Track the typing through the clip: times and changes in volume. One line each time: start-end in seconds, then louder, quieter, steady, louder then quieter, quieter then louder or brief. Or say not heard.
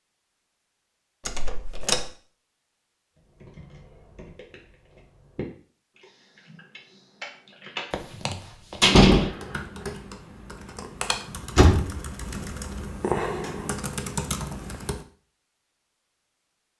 3.1-15.1 louder.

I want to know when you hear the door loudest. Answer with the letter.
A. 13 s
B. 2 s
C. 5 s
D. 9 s
D.